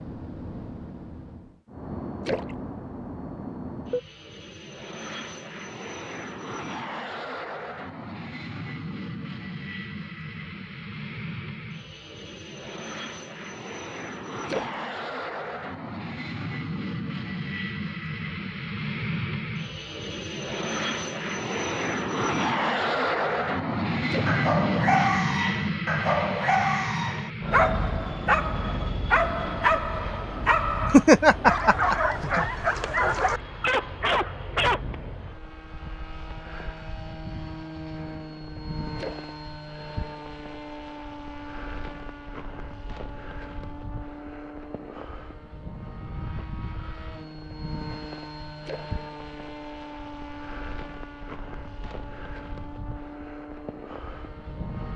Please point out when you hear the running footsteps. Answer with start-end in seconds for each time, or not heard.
not heard.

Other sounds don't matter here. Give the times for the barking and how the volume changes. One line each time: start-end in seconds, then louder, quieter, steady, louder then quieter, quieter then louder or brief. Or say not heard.
24.2-34.8 steady.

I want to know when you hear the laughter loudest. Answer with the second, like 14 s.
31 s.